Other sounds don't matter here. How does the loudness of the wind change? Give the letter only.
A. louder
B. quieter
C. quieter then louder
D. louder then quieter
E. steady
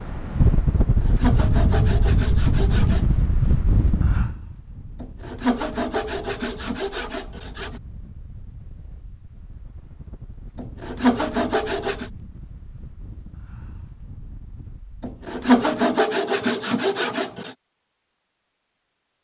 B.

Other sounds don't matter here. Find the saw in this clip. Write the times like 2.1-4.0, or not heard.
0.8-3.1, 5.0-7.8, 10.6-12.1, 15.0-17.6.